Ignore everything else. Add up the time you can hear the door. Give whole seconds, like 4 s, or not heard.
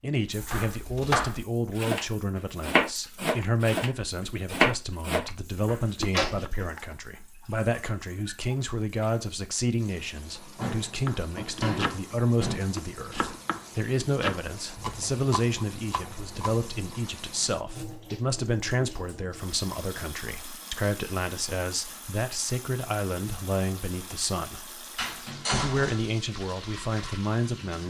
4 s.